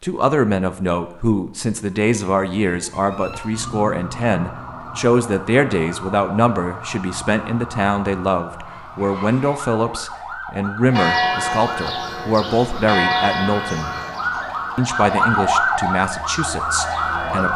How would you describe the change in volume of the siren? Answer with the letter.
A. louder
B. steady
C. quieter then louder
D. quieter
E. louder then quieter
A.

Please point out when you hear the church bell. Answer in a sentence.
The church bell can be heard from 10.9 to 17.5 s.